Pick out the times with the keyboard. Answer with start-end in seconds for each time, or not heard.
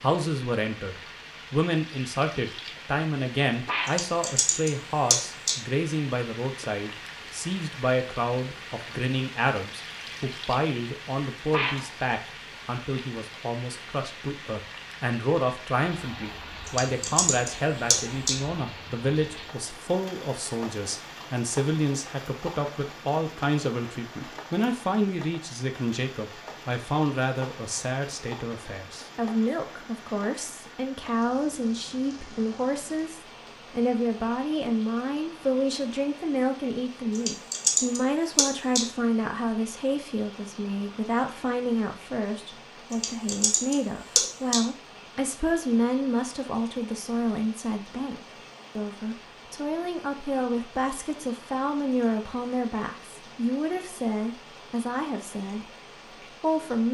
3.9-5.5, 16.6-18.4, 37.1-38.8, 42.9-44.6.